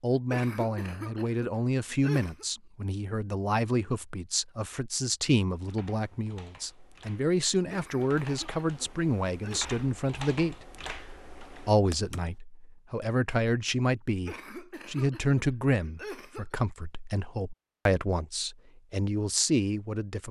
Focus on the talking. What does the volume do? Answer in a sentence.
The volume of the talking stays about the same.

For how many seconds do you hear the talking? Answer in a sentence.
You can hear the talking for 19 seconds altogether.